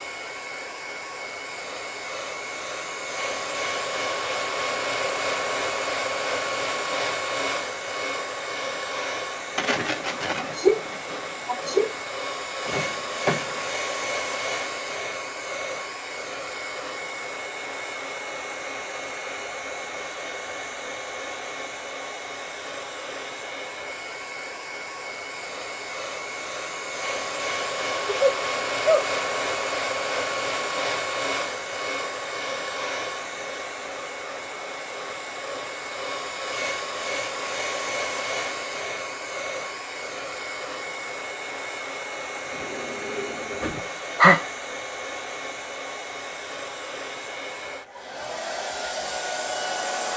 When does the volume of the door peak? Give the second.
13 s.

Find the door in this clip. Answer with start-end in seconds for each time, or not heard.
12.7-13.7, 42.4-43.9.